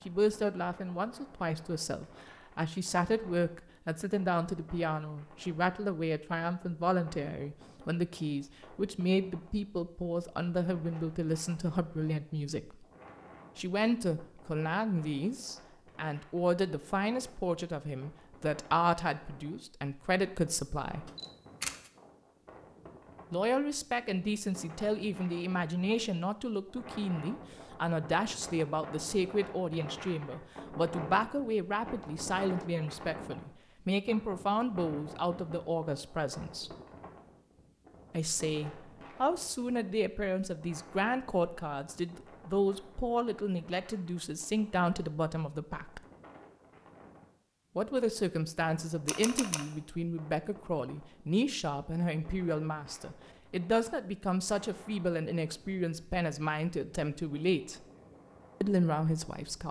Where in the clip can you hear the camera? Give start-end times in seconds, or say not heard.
21.1-21.9, 49.0-49.6.